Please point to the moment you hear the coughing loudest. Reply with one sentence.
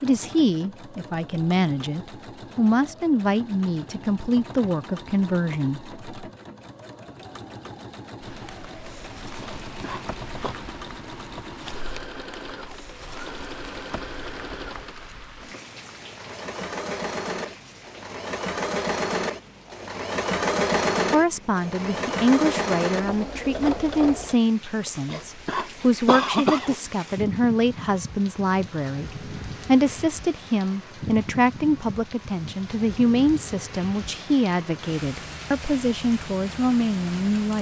The loudest moment of the coughing is at 26 seconds.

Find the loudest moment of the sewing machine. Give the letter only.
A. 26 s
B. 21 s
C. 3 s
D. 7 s
B.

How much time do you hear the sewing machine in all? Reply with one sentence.
You can hear the sewing machine for 24 seconds altogether.